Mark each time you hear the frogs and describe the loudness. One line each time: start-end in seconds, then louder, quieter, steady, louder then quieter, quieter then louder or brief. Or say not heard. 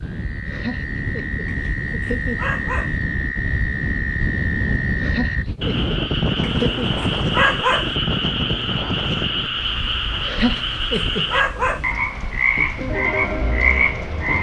0.0-14.3 louder.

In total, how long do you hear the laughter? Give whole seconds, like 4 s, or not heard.
5 s.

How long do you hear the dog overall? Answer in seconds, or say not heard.
5 s.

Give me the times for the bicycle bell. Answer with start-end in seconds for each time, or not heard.
not heard.